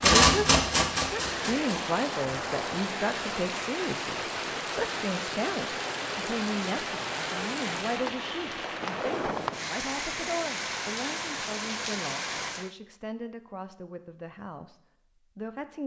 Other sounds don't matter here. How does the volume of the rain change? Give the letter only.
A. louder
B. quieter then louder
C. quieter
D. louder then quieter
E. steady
E.